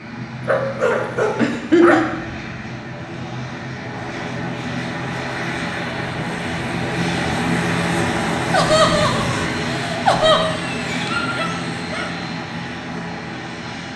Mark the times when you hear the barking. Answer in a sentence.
You can hear the barking from 0.5 to 2.0 s and from 10.6 to 12.1 s.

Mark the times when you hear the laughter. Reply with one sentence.
The laughter can be heard from 1.4 to 2.0 s and from 8.5 to 10.4 s.